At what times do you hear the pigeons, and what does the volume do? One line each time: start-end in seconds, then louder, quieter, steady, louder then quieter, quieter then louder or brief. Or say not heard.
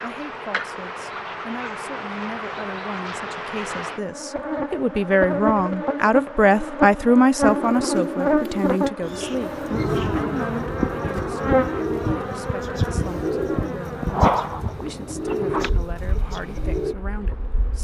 7.5-16.9 steady.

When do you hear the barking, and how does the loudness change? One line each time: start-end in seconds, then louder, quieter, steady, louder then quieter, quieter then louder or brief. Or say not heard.
not heard.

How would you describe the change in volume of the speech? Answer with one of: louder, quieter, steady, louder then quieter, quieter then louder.
louder then quieter.